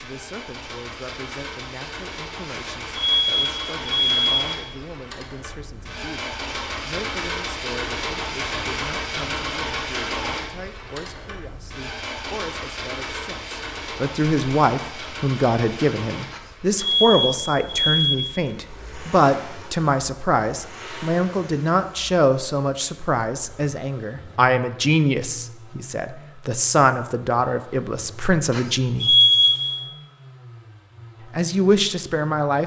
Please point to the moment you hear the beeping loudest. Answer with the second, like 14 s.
29 s.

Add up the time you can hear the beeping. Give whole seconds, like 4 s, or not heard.
5 s.